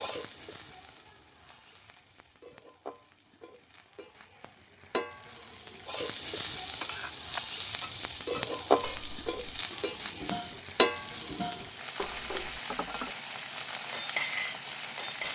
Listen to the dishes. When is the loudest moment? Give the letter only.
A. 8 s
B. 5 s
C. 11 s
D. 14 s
D.